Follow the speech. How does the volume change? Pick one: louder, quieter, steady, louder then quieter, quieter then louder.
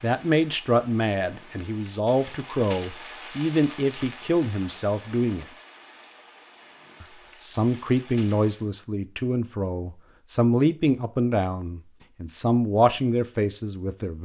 steady.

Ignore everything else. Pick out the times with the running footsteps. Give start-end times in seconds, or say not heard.
not heard.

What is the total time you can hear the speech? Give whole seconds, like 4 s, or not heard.
13 s.